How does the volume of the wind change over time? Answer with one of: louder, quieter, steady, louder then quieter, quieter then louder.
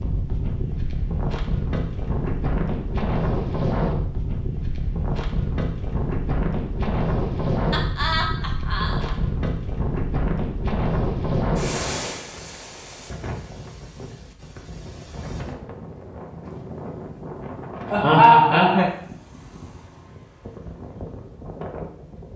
quieter.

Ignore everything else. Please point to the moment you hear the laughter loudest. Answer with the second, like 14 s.
18 s.